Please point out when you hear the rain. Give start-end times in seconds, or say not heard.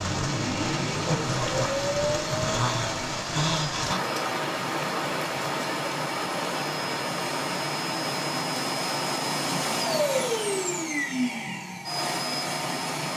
0.0-10.1.